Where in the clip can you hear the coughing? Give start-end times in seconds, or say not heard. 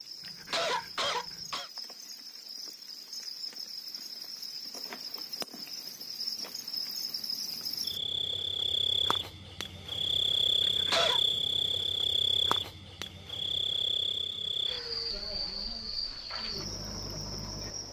0.2-1.7, 10.6-11.2.